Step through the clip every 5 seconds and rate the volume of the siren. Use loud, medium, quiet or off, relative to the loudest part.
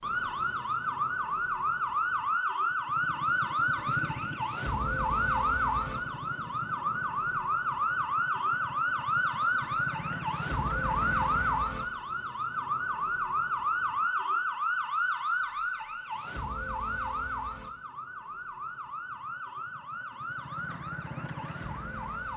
loud, loud, loud, medium, medium.